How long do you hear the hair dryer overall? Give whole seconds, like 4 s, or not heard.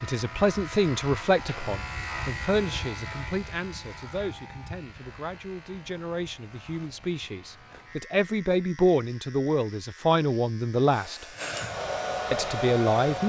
2 s.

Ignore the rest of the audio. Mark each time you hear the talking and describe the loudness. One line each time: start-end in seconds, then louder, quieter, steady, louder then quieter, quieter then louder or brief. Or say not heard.
0.0-11.2 quieter then louder
12.3-13.2 brief.